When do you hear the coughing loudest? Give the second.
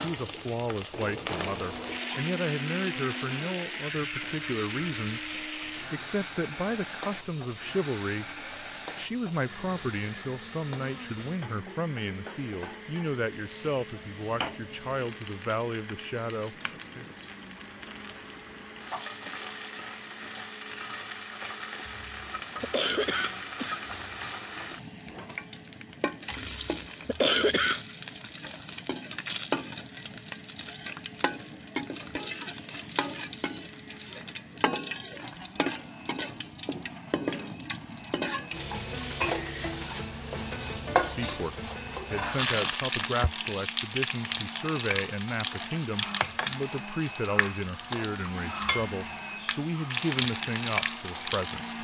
27 s.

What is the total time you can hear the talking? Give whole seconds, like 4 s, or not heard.
28 s.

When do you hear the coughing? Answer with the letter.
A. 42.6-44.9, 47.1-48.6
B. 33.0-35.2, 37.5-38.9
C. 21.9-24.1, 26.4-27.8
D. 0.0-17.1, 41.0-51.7
C.